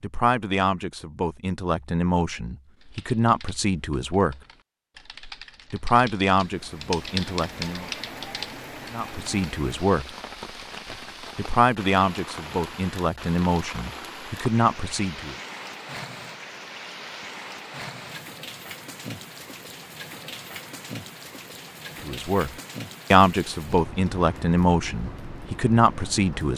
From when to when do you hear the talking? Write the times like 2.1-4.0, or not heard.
0.0-4.4, 5.7-7.8, 8.9-10.1, 11.3-15.3, 22.1-22.5, 23.1-26.5.